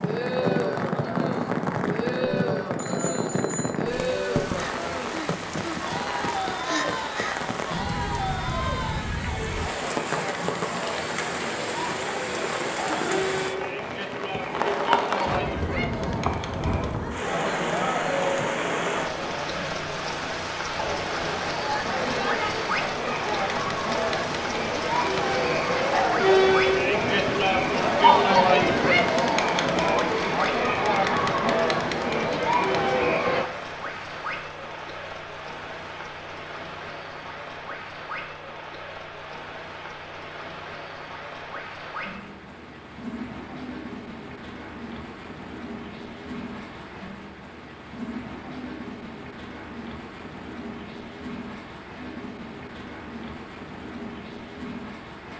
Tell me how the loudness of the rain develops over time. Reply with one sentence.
The loudness of the rain goes down.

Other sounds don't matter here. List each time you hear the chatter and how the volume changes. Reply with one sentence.
You can hear the chatter from 0.0 to 33.5 s, getting louder.